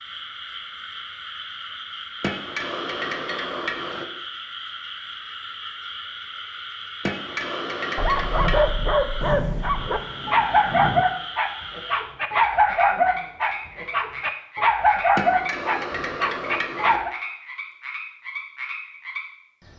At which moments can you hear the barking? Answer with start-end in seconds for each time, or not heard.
8.0-17.1.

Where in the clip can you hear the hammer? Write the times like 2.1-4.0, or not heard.
2.2-4.0, 7.0-8.7, 15.2-17.0.